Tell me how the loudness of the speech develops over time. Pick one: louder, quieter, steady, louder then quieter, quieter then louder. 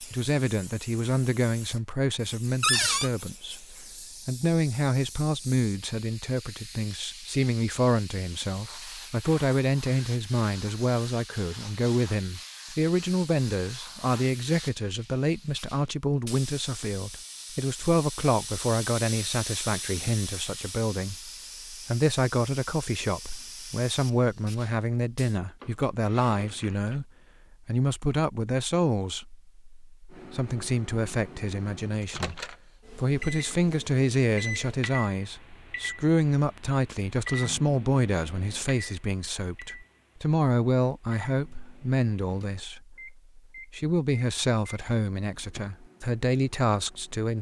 steady.